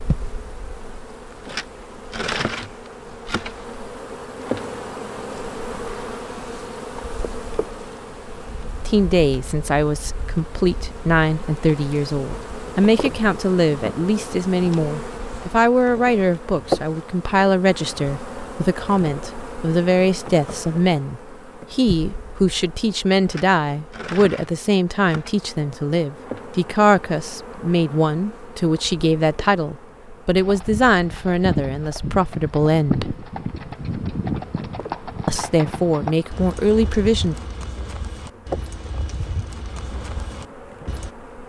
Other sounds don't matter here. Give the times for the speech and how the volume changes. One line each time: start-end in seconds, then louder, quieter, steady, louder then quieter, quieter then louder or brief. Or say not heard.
8.8-33.1 steady
35.2-37.4 brief.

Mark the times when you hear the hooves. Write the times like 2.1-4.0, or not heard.
30.4-41.1.